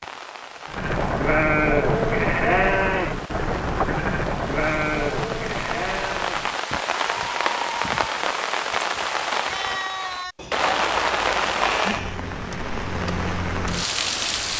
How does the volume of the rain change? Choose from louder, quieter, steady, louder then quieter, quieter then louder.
louder.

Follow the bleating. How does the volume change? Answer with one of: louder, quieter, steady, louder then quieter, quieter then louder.
quieter.